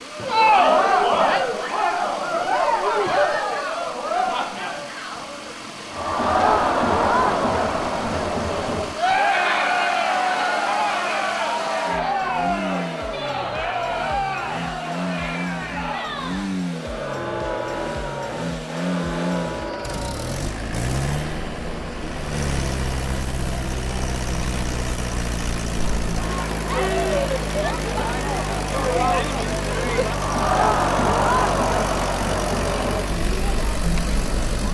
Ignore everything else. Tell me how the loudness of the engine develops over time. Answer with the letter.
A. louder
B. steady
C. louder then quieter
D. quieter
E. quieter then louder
A.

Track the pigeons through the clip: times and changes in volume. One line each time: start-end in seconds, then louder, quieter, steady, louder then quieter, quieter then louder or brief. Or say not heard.
not heard.